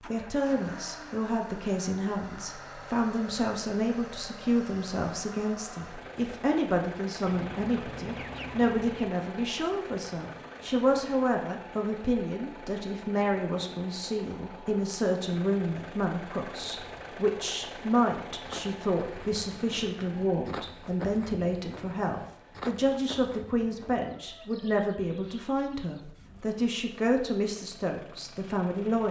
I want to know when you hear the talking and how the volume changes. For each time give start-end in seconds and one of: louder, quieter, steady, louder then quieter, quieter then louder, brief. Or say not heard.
0.0-29.0 steady.